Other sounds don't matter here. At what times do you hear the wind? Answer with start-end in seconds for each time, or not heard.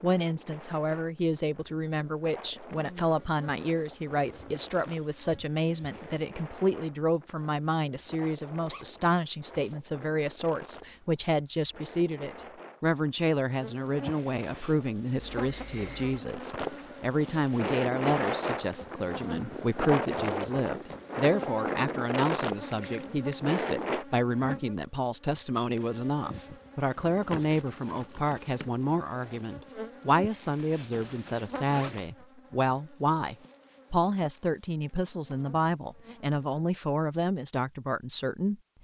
0.0-24.1.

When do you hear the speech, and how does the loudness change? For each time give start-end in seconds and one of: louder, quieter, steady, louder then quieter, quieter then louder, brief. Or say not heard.
0.0-38.5 steady.